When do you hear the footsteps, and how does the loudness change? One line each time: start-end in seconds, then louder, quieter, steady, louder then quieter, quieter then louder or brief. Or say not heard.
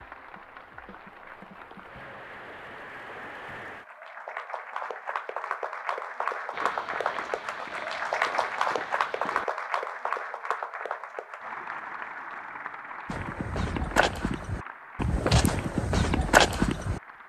6.5-9.4 brief
13.1-17.2 quieter then louder.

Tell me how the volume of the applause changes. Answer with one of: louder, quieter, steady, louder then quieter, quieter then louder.
louder then quieter.